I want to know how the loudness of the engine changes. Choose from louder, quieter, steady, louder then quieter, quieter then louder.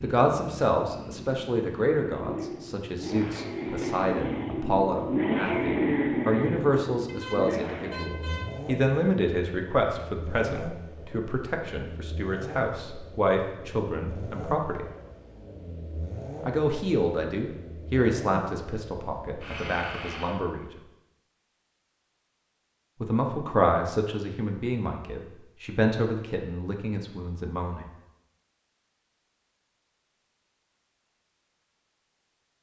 louder then quieter.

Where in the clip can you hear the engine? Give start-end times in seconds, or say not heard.
0.0-20.4.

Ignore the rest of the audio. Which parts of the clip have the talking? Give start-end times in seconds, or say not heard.
0.0-14.8, 16.4-20.6, 23.0-27.9.